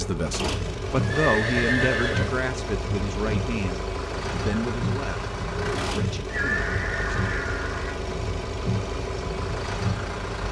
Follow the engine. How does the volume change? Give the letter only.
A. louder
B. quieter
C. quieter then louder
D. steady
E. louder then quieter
D.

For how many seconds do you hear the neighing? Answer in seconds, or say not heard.
3 s.